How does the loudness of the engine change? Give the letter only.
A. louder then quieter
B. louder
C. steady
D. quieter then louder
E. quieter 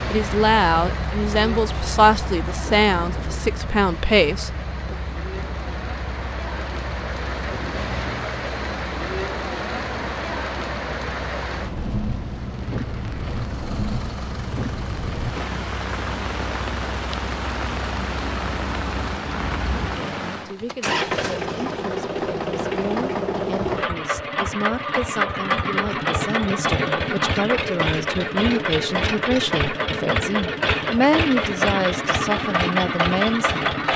B.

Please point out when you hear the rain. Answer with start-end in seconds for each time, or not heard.
0.0-20.6.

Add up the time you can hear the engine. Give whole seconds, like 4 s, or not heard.
34 s.